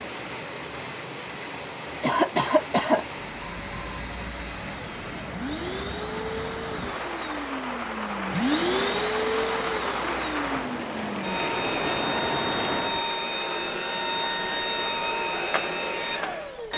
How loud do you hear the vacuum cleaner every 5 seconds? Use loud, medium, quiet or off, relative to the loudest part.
medium, loud, loud, loud.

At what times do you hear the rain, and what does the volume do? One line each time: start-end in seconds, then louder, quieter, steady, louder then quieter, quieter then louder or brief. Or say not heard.
0.0-13.1 louder.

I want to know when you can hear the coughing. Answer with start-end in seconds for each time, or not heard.
2.0-3.0.